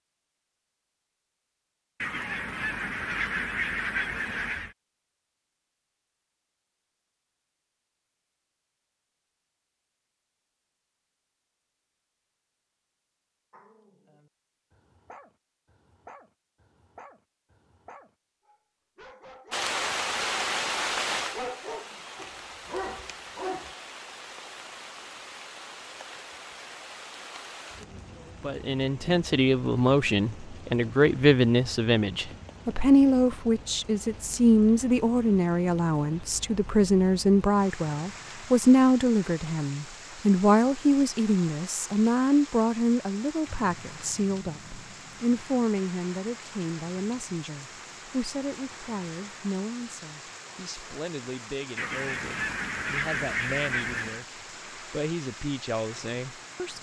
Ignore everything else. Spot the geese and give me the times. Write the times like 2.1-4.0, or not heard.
2.0-4.8, 51.8-54.2.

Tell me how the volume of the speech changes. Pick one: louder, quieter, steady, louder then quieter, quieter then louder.
quieter.